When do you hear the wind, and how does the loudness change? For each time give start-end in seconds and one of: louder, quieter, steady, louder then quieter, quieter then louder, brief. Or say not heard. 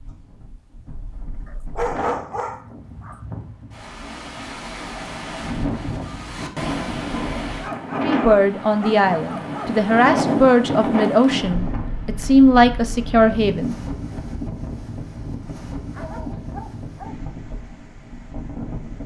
0.0-19.0 louder then quieter.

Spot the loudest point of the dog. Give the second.
2 s.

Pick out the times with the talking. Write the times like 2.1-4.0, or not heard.
8.0-13.8.